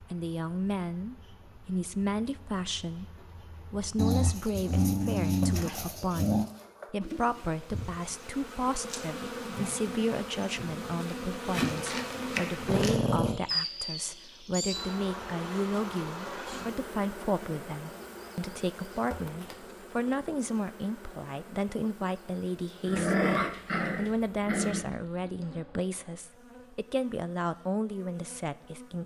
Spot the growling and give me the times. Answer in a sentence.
The growling can be heard from 4.0 to 6.5 s, from 12.7 to 13.4 s and from 22.8 to 24.9 s.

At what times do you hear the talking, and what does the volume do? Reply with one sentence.
The talking can be heard from 0.0 to 29.0 s, at a steady volume.